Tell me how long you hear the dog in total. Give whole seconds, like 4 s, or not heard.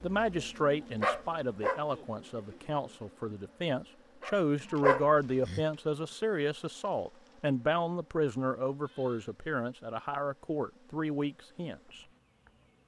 3 s.